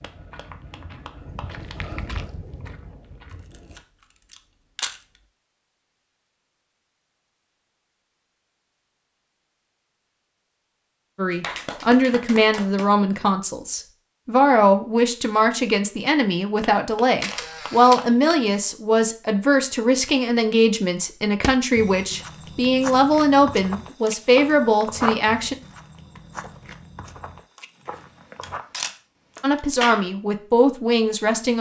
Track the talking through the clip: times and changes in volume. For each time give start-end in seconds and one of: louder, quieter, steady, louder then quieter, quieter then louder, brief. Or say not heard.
11.2-25.6 steady
29.4-31.5 brief.